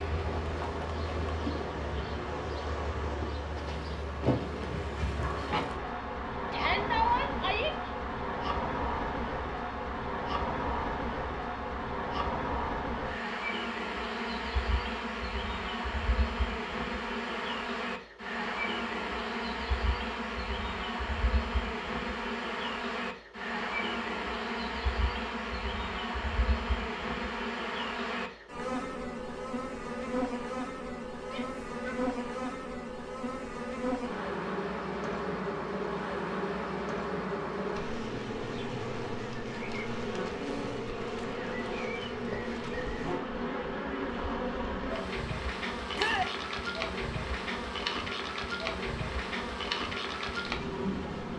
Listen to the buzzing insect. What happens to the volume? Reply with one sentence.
The loudness of the buzzing insect stays about the same.